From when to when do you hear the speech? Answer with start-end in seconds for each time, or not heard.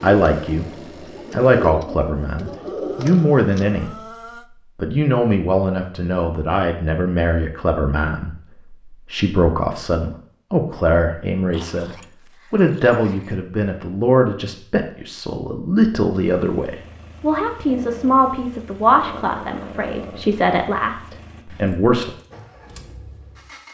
0.0-4.0, 4.8-22.1.